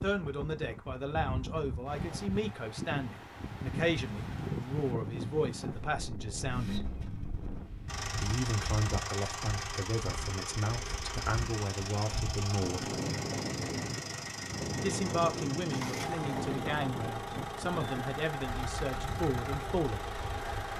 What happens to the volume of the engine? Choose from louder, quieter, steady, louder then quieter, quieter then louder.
steady.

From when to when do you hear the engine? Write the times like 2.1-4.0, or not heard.
6.3-20.7.